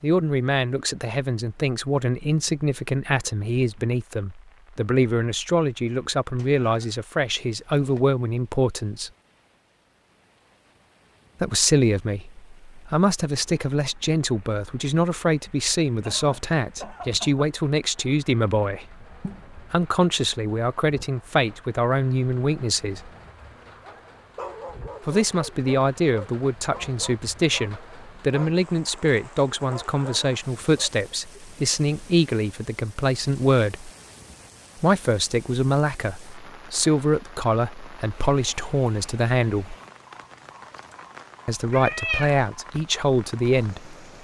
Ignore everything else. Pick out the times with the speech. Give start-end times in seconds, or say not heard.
0.0-9.1, 11.4-23.1, 25.1-33.9, 34.8-39.8, 41.5-44.0.